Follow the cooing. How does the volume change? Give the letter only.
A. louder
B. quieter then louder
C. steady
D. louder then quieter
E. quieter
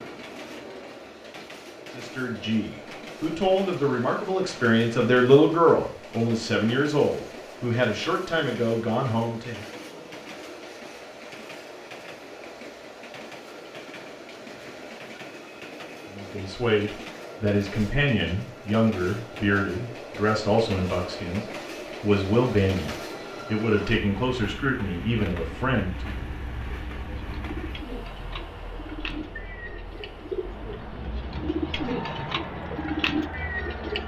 A.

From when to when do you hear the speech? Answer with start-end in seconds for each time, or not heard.
1.9-9.7, 16.1-26.1.